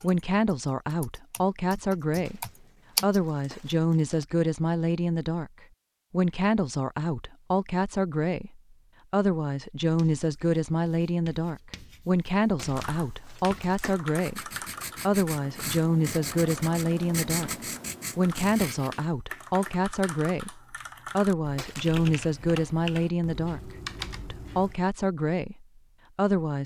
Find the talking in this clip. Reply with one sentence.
You can hear the talking from 0.0 to 17.5 s, from 18.1 to 23.6 s and from 24.3 to 26.6 s.